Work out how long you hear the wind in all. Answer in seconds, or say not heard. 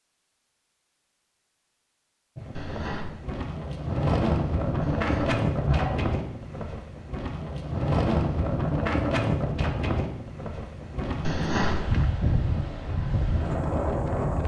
12 s.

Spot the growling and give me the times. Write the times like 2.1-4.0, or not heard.
2.5-3.2, 4.8-6.2, 11.2-12.1.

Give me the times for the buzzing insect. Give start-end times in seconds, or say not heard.
not heard.